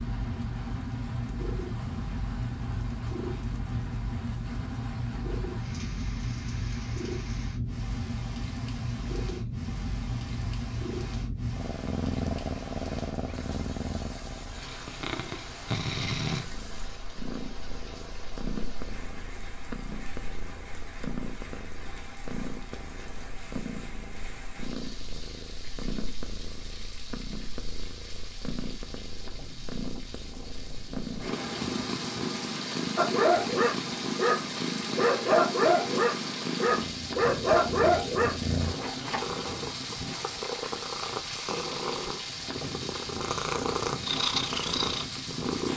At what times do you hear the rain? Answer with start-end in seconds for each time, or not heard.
0.0-45.7.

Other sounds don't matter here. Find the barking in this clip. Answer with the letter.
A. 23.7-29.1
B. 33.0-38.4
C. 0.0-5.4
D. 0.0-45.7
B.